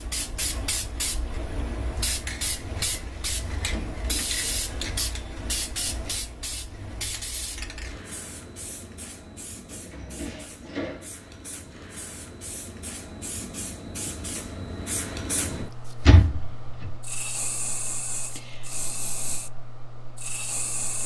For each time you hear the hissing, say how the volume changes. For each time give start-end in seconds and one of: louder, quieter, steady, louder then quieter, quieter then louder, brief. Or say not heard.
0.0-21.0 quieter then louder.